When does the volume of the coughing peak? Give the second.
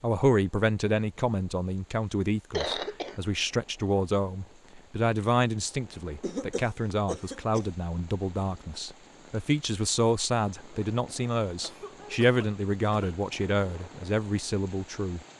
3 s.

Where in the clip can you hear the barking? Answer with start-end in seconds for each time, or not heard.
not heard.